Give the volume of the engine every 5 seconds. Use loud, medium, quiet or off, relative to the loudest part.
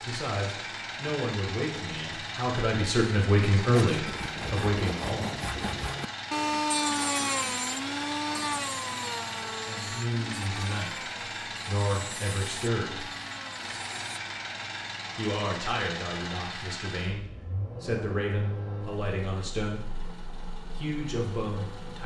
loud, loud, loud, loud, medium.